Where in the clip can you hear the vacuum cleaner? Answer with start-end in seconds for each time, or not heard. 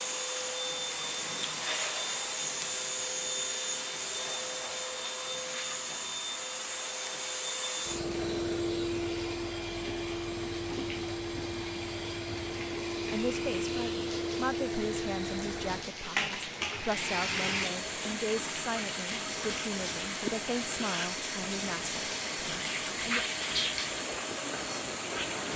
0.0-25.5.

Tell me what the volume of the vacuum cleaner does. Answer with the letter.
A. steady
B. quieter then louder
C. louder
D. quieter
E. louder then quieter
A.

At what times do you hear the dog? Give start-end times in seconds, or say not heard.
not heard.